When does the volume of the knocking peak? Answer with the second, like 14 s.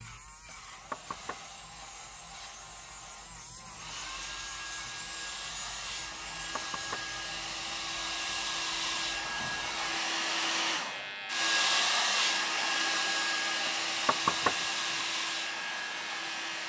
14 s.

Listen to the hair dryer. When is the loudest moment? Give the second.
12 s.